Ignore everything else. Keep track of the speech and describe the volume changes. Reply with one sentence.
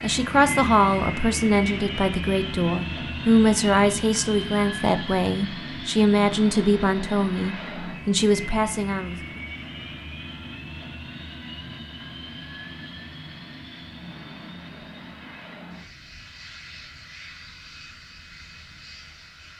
The volume of the speech stays about the same.